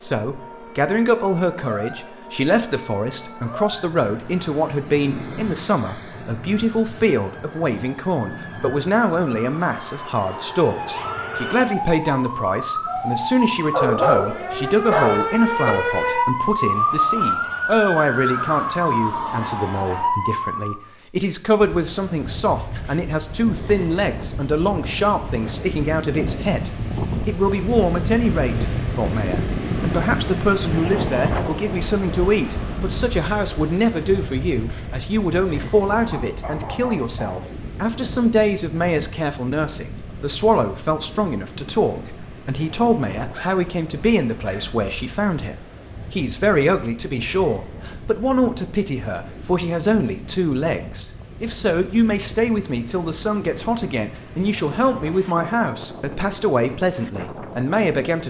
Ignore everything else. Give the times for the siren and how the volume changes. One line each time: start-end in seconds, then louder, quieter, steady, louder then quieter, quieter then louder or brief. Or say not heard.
0.0-20.8 louder.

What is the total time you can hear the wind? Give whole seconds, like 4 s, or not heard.
37 s.